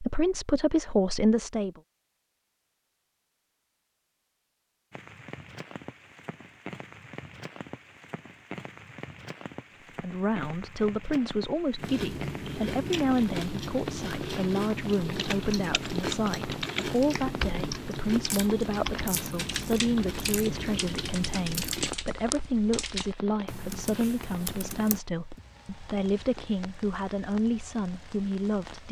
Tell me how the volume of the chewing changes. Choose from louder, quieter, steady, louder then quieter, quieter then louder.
steady.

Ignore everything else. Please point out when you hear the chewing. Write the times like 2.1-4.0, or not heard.
11.8-21.9.